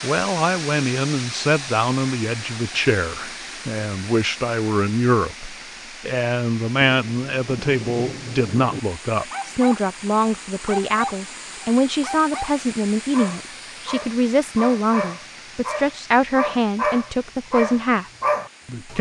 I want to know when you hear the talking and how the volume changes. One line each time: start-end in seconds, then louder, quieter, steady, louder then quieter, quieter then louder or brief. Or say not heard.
0.0-18.9 steady.